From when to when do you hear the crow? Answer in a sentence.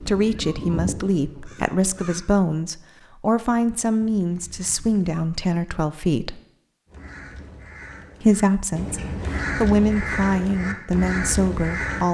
You can hear the crow from 0.0 to 2.2 s and from 6.8 to 12.0 s.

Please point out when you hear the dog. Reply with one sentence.
The dog can't be heard in this clip.